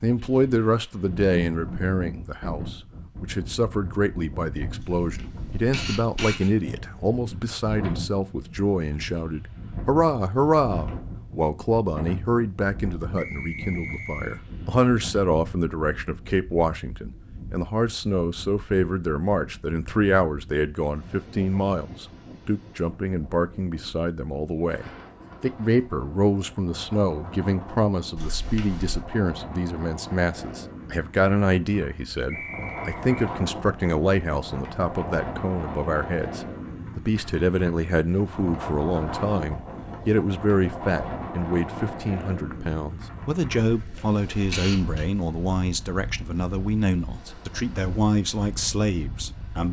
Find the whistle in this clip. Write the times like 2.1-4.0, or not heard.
13.2-14.4, 32.2-33.1.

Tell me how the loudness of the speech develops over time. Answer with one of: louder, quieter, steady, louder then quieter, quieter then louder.
steady.